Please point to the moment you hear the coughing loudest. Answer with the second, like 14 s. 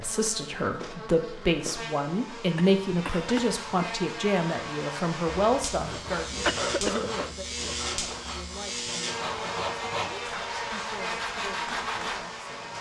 7 s.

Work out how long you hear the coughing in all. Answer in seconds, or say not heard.
2 s.